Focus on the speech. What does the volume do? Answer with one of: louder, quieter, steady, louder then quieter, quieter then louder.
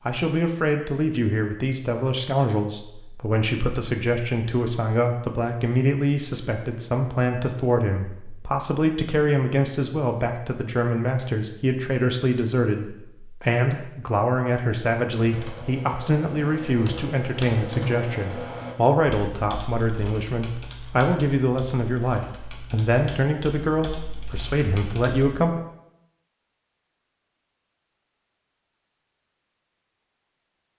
steady.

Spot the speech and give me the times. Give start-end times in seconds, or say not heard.
0.1-25.6.